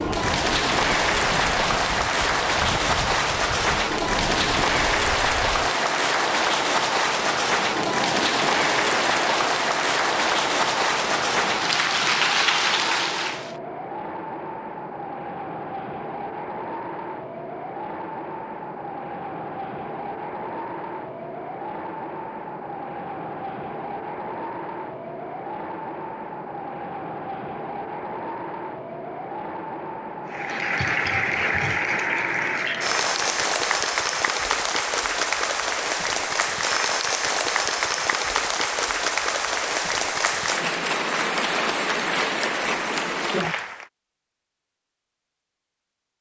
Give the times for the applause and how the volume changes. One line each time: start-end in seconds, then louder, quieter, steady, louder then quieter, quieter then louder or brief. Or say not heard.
0.0-13.6 steady
30.2-43.9 steady.